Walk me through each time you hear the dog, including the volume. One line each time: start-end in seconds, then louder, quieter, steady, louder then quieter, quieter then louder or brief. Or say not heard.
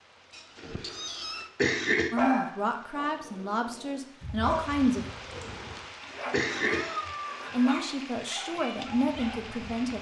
2.1-9.6 louder then quieter.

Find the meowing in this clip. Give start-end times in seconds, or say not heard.
0.3-1.5, 6.7-7.5.